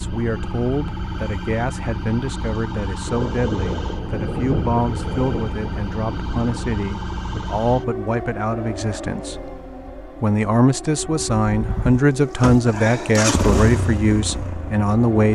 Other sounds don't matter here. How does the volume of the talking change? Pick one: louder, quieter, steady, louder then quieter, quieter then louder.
louder.